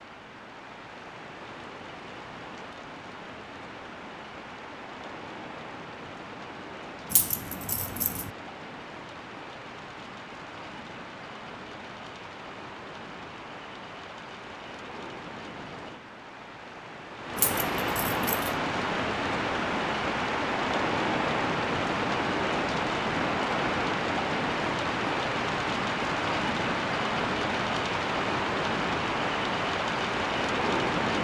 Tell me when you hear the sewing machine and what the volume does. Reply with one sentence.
The sewing machine can't be heard in this clip.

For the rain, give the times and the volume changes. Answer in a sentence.
You can hear the rain from 0.0 to 31.1 s, getting louder.